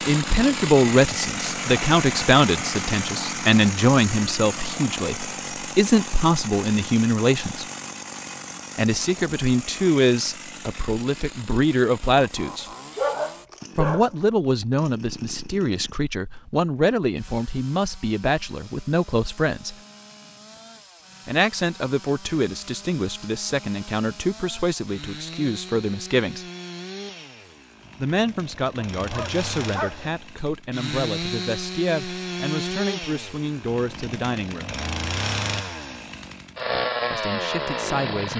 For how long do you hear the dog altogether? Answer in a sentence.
You can hear the dog for 3 seconds altogether.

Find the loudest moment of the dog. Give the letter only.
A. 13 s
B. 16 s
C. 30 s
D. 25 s
A.